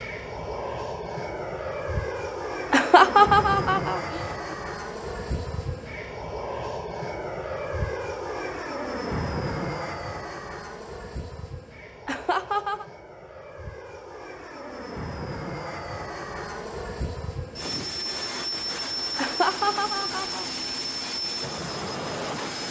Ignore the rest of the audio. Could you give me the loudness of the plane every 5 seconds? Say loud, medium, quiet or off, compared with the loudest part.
loud, loud, medium, loud, loud.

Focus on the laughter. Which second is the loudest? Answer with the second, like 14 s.
3 s.